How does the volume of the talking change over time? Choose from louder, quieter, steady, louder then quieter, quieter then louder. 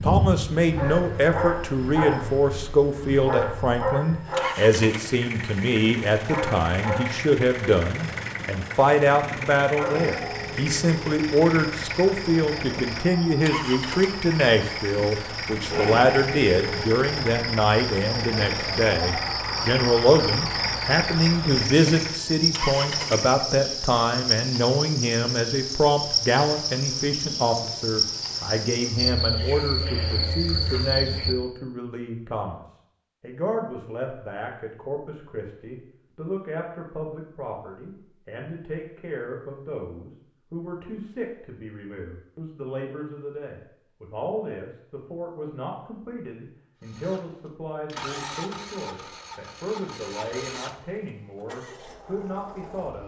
quieter.